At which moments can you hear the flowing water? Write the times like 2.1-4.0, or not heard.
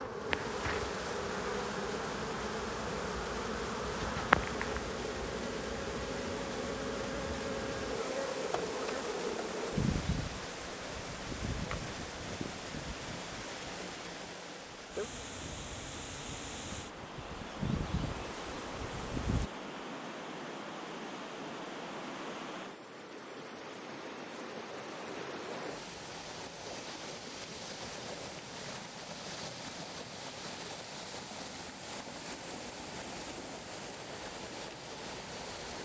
0.0-35.8.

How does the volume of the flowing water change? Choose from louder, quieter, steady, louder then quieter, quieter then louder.
steady.